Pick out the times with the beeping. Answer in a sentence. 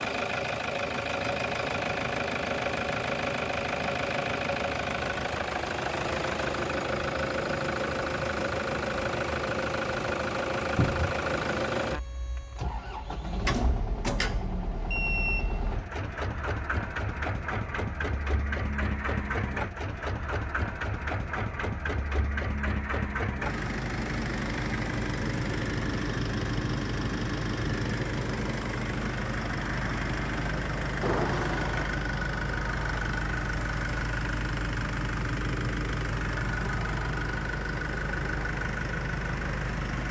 You can hear the beeping from 14.8 to 15.8 s.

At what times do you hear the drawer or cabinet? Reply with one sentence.
The drawer or cabinet can be heard from 10.8 to 11.2 s, from 13.4 to 14.7 s and from 31.0 to 31.9 s.